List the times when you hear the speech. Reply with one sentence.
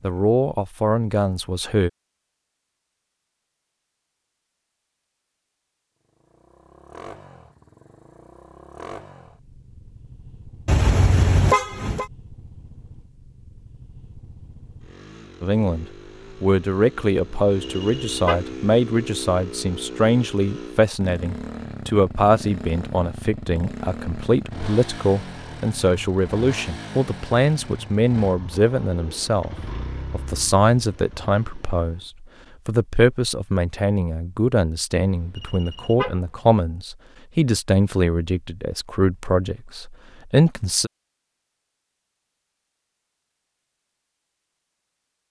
You can hear the speech from 0.0 to 1.9 s and from 15.4 to 40.9 s.